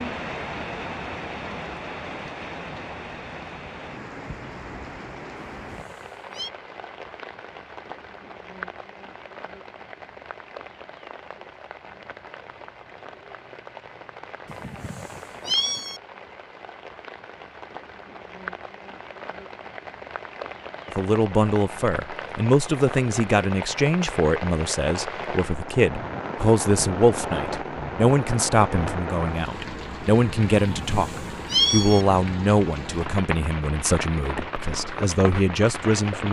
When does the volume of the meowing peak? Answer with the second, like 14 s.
32 s.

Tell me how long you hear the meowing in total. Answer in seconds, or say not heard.
4 s.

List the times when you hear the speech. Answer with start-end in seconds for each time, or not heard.
20.9-36.2.